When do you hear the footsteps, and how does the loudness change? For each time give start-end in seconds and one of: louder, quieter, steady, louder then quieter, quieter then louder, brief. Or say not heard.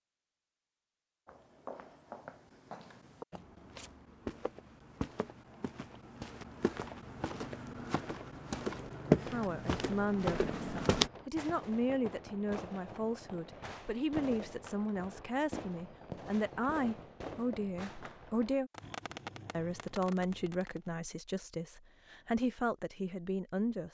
1.2-11.1 louder.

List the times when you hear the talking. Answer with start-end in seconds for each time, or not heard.
9.2-18.7, 19.5-23.8.